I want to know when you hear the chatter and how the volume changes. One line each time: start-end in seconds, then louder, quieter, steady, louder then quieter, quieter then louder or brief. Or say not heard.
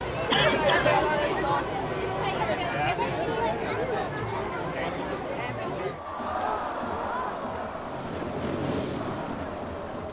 0.0-10.0 quieter.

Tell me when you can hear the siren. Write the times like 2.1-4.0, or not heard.
not heard.